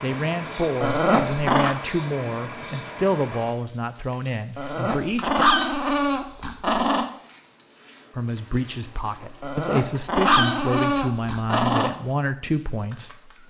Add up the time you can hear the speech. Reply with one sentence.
You can hear the speech for 11 seconds altogether.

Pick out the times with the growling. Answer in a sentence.
You can hear the growling from 0.8 to 1.8 s, from 4.5 to 7.0 s and from 9.4 to 11.9 s.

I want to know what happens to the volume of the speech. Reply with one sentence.
The volume of the speech stays about the same.